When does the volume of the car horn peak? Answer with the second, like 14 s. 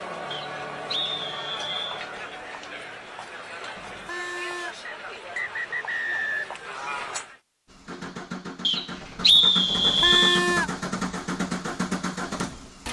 10 s.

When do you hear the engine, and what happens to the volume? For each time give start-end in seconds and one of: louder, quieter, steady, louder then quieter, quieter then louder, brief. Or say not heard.
7.7-12.8 louder.